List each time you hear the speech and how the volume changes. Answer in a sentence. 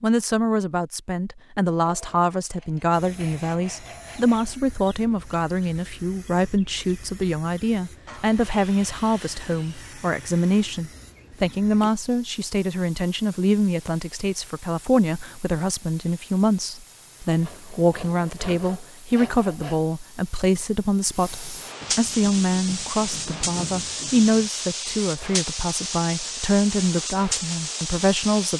You can hear the speech from 0.0 to 28.5 s, at a steady volume.